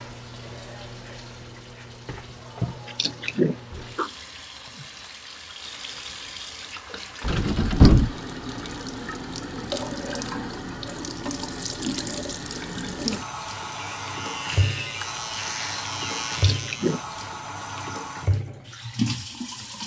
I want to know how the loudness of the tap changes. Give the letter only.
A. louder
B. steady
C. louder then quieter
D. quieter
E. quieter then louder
A.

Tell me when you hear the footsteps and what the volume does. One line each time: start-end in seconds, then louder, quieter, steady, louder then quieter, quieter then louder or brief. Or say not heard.
not heard.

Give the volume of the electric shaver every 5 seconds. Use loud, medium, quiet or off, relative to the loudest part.
off, off, loud, loud.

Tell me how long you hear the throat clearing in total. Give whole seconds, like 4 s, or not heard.
2 s.